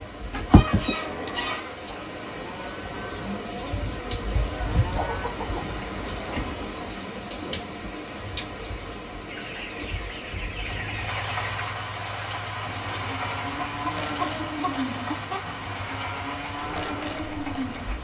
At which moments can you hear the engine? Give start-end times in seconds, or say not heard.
10.6-17.9.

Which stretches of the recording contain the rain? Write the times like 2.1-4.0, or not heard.
0.0-17.9.